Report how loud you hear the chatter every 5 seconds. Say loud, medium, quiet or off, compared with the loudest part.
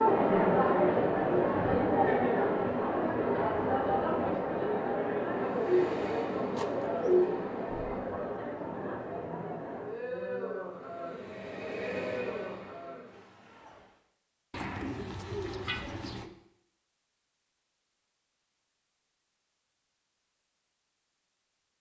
loud, medium, quiet, off, off.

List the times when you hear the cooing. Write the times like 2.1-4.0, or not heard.
5.5-7.3, 14.5-16.3.